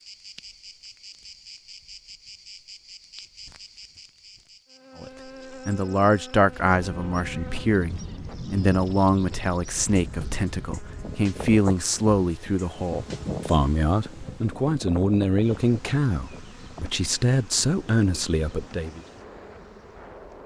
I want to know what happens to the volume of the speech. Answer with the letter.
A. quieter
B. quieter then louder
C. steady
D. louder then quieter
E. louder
C.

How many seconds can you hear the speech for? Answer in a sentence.
You can hear the speech for 14 seconds altogether.